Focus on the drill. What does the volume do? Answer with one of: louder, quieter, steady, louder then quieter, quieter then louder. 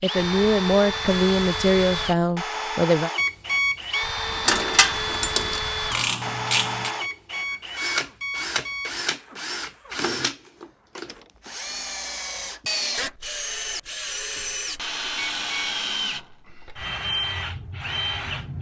steady.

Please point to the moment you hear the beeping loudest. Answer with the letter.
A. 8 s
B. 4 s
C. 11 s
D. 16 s
B.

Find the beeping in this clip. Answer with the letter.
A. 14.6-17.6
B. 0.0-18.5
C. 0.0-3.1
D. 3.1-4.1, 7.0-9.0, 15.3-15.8
D.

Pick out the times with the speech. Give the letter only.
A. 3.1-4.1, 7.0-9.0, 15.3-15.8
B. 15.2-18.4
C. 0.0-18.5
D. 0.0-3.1
D.